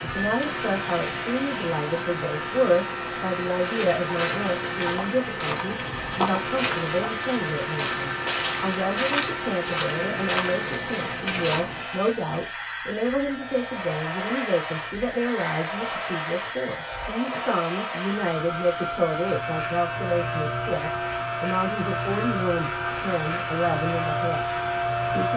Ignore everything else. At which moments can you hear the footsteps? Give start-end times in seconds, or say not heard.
3.5-11.7.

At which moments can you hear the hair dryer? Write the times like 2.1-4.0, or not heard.
0.0-25.3.